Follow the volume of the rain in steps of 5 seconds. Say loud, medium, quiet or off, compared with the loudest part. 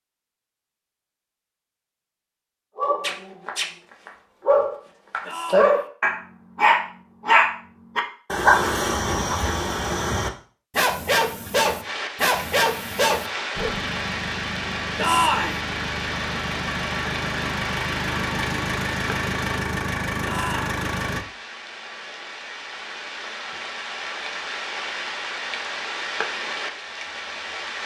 off, off, loud, loud, loud, loud.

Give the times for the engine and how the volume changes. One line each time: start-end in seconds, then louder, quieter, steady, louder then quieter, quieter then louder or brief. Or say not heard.
13.6-21.2 louder.